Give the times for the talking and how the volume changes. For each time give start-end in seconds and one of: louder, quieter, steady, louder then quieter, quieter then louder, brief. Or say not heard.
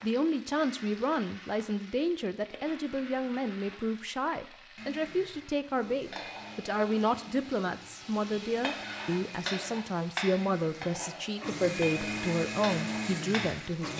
0.0-13.9 steady.